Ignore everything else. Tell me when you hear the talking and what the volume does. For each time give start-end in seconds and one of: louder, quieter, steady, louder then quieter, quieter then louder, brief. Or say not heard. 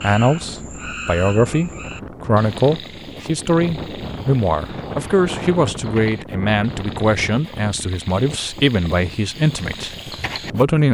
0.0-10.9 steady.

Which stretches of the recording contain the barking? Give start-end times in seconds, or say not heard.
not heard.